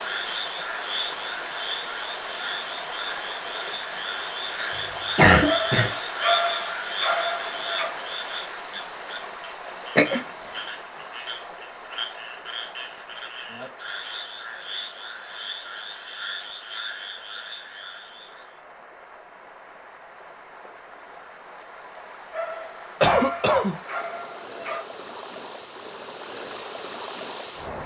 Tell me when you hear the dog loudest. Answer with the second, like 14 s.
6 s.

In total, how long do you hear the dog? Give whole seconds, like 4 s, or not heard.
5 s.